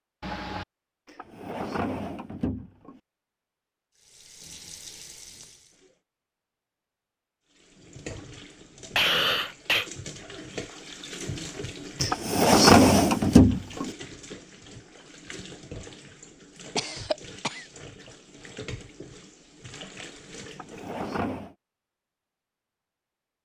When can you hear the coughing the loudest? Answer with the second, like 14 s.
9 s.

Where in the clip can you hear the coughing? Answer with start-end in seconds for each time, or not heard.
0.2-0.7, 8.9-9.9, 16.8-17.6.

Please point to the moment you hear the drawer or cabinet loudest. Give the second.
13 s.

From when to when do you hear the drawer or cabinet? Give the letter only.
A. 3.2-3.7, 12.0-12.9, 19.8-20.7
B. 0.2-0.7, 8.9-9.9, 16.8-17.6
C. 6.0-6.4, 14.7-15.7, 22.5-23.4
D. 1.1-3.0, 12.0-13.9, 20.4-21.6
D.